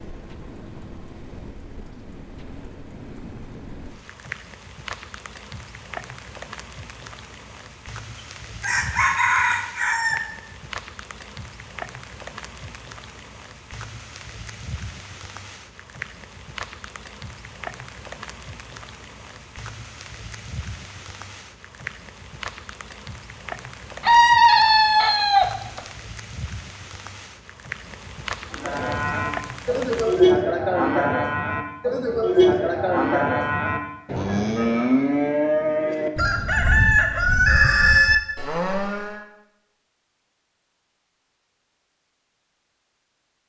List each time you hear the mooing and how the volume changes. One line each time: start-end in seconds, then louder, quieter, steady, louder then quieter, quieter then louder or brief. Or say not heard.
28.6-39.2 quieter.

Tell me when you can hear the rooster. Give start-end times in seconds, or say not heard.
8.6-10.2, 24.0-25.8, 36.1-38.2.